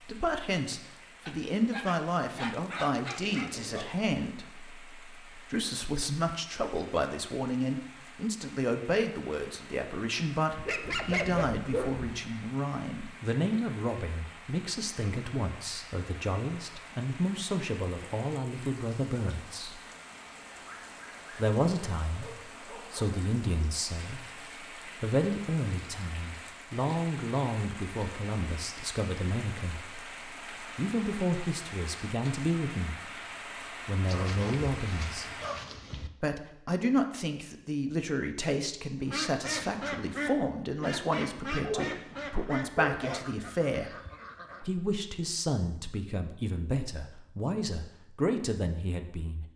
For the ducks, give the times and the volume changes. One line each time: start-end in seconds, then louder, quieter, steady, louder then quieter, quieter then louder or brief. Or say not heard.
39.0-44.6 quieter.